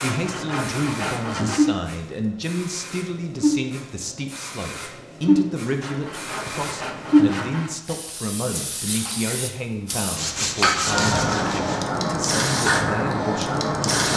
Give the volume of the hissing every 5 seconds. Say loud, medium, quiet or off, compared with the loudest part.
medium, loud, loud.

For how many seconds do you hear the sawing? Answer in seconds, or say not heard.
5 s.